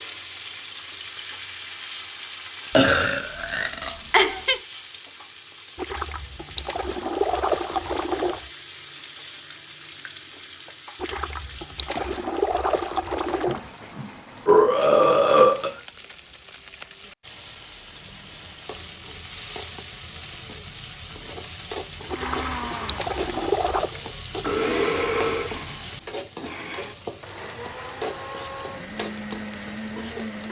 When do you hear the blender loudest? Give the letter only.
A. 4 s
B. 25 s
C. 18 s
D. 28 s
B.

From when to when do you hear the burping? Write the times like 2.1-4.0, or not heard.
2.8-4.6, 13.4-15.8, 23.9-25.5.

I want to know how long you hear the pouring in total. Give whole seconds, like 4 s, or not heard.
7 s.